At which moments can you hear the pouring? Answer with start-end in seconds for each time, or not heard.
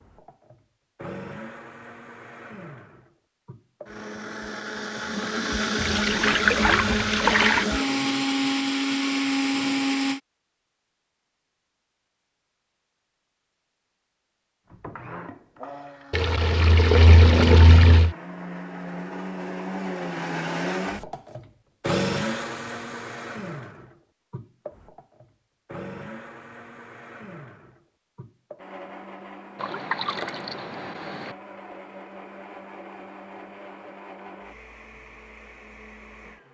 5.8-7.7, 16.1-18.1, 29.6-31.4.